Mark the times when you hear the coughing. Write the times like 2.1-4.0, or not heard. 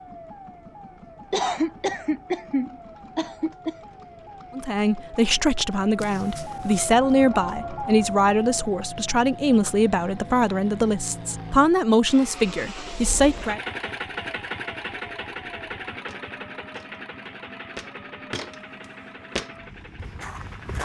1.3-3.8.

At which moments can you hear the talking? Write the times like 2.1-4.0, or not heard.
4.5-13.6.